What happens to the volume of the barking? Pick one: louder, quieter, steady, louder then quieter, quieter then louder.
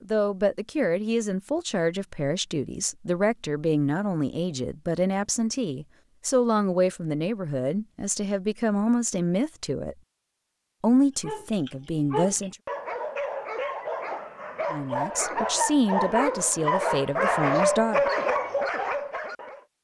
louder.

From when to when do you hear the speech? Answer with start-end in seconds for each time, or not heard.
0.0-9.9, 10.8-12.6, 14.7-18.1.